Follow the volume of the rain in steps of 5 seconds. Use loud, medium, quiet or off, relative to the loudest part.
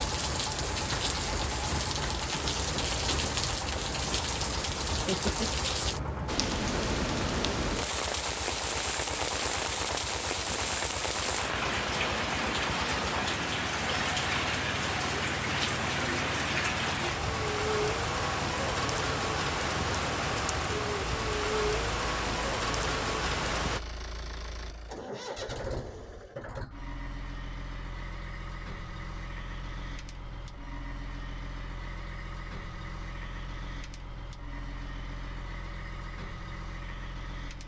loud, loud, loud, loud, loud, off, off, off.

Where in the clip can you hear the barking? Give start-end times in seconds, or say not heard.
not heard.